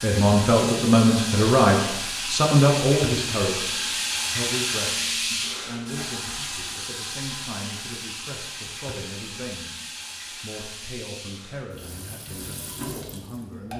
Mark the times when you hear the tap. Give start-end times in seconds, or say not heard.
0.0-13.7.